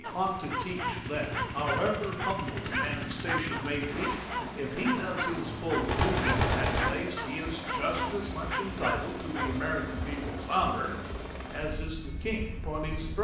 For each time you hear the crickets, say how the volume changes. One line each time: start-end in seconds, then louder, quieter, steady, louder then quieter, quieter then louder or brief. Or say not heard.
not heard.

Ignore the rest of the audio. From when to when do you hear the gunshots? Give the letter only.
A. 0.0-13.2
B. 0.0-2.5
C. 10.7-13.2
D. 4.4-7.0
D.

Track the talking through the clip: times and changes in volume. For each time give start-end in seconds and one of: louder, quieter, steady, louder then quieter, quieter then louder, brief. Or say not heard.
0.0-13.2 steady.